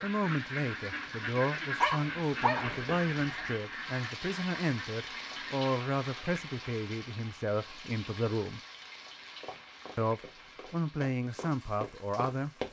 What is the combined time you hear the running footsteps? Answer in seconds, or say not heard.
3 s.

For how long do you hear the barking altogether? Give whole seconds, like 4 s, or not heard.
2 s.